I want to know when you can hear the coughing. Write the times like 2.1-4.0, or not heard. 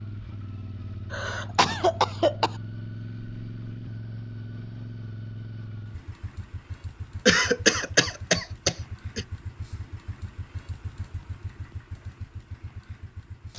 1.1-2.5, 7.2-9.2.